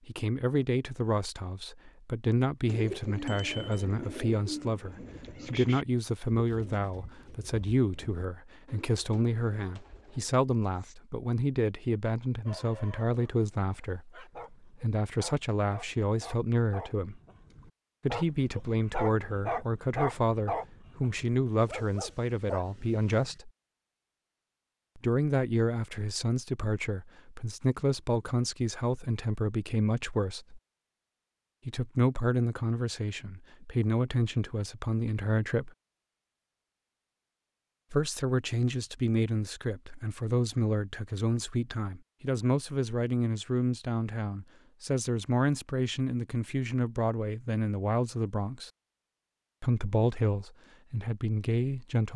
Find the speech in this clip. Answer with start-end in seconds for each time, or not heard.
0.1-17.2, 18.0-23.5, 24.9-30.6, 31.6-35.7, 37.9-48.7, 49.6-52.1.